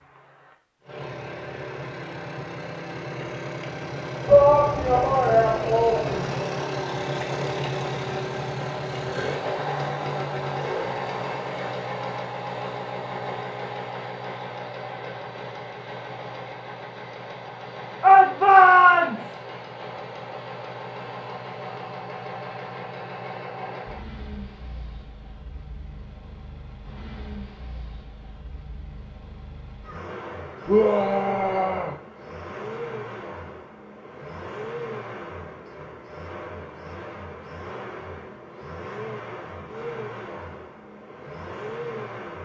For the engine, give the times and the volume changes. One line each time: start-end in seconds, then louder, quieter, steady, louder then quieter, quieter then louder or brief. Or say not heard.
0.0-42.4 quieter.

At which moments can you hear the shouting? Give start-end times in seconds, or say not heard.
4.2-6.2, 18.0-19.4, 30.6-31.9.